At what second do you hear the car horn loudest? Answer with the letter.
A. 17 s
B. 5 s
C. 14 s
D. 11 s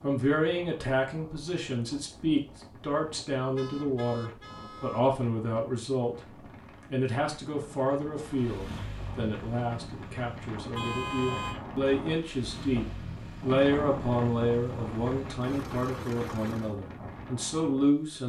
D.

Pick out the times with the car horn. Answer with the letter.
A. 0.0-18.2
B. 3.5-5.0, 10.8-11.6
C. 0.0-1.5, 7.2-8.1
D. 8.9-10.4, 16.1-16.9
B.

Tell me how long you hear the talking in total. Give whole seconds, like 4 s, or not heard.
18 s.